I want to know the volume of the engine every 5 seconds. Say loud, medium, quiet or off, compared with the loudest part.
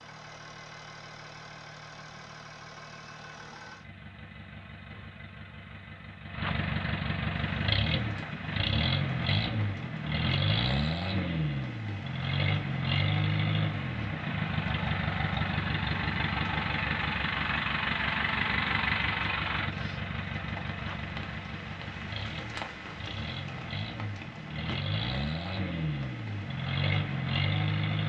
quiet, loud, loud, loud, medium, loud.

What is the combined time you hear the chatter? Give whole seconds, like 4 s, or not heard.
not heard.